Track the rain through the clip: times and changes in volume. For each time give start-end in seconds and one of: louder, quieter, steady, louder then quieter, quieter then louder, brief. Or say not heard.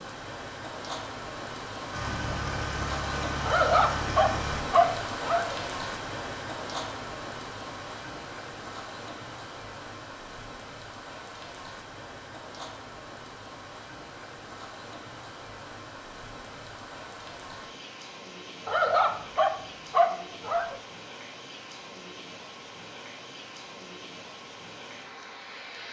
0.0-25.8 quieter.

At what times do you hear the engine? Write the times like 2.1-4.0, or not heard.
1.9-4.7.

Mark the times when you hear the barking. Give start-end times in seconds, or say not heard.
3.5-5.5, 18.6-20.8.